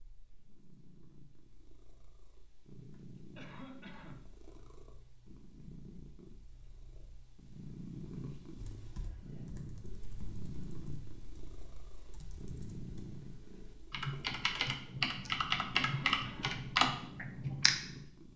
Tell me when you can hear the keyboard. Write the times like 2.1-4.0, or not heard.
8.6-17.8.